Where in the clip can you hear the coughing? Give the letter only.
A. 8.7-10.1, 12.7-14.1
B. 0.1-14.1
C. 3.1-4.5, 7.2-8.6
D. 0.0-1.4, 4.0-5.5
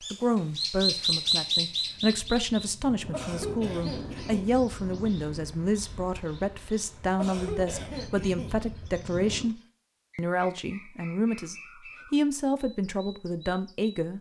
C.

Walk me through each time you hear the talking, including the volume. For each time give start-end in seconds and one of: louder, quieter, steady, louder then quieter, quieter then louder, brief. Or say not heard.
0.1-14.1 steady.